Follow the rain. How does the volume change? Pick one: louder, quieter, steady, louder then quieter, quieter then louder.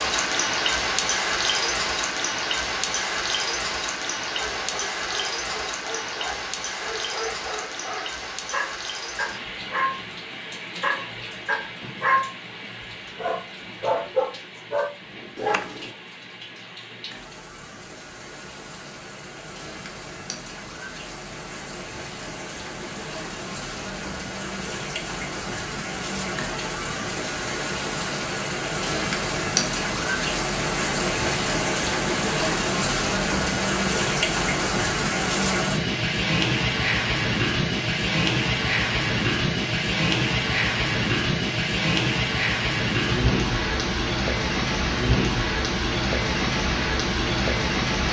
quieter then louder.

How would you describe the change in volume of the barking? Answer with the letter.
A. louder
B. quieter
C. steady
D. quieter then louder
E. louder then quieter
A.